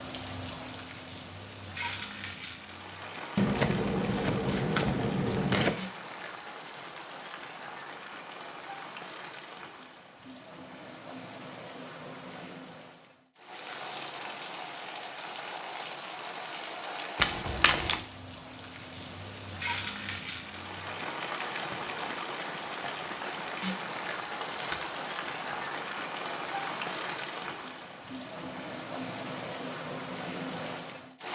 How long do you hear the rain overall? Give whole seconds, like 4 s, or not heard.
31 s.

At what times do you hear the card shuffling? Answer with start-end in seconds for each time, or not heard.
3.4-5.8, 17.1-18.0, 24.4-24.8.